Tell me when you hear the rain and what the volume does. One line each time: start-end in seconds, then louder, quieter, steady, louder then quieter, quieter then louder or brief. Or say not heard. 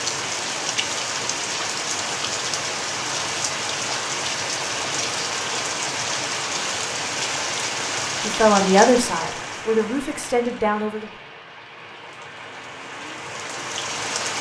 0.0-14.3 quieter.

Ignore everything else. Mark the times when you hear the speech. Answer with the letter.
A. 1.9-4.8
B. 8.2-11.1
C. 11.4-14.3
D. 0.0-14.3
B.